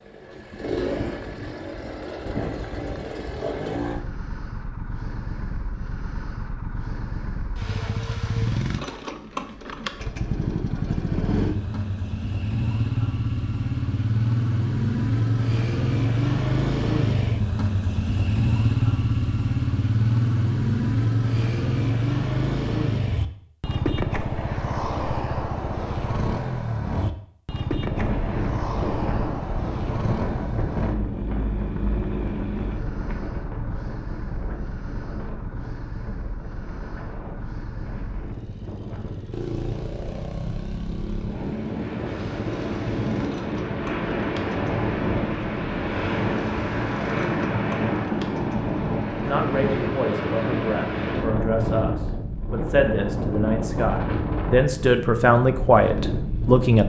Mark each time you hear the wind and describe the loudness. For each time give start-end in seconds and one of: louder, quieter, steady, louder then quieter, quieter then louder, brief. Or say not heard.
27.7-56.8 quieter then louder.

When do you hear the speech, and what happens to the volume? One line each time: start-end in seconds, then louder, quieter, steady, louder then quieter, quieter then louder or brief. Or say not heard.
49.2-56.8 louder.